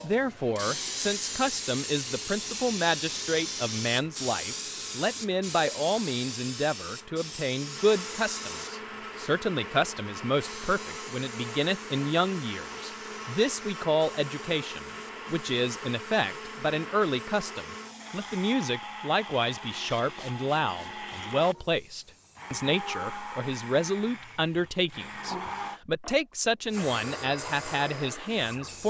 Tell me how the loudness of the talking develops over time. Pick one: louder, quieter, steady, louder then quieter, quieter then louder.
steady.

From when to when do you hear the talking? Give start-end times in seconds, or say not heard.
0.0-28.8.